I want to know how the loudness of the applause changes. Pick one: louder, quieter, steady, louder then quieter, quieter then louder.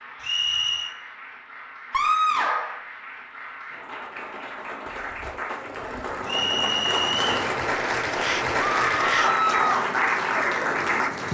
louder.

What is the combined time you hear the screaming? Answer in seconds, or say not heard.
2 s.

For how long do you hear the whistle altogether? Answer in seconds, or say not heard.
2 s.